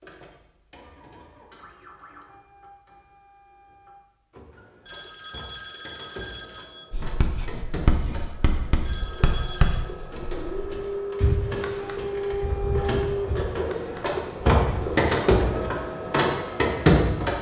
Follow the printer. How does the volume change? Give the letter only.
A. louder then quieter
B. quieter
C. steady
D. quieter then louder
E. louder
E.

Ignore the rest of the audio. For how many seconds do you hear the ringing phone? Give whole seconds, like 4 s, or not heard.
3 s.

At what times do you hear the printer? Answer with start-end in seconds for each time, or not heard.
0.0-17.3.